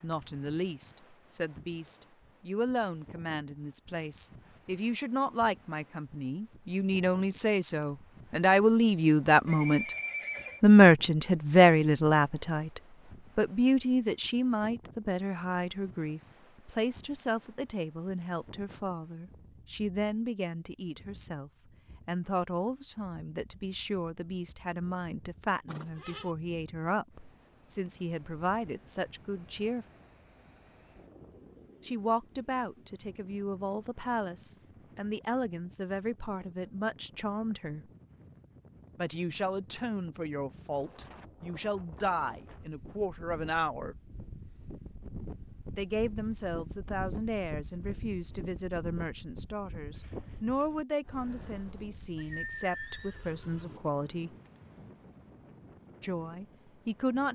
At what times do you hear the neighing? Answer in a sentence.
You can hear the neighing from 9.4 to 10.6 s, from 25.6 to 26.3 s and from 52.1 to 53.8 s.